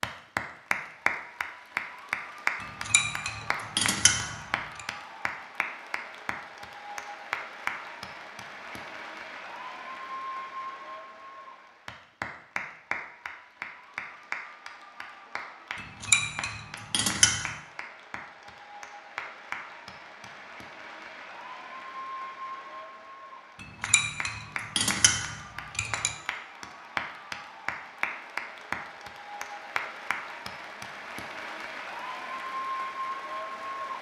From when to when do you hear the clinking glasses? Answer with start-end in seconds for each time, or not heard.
2.6-4.8, 15.8-17.6, 23.6-26.1.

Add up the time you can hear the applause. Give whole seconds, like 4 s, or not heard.
34 s.